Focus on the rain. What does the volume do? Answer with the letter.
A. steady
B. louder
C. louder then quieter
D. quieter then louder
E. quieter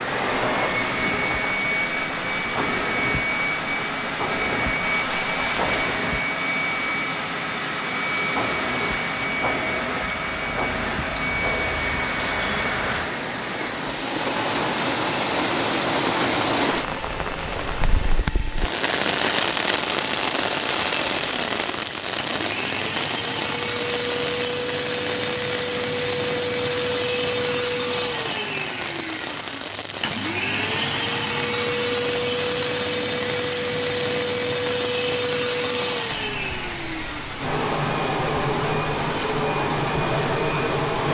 C.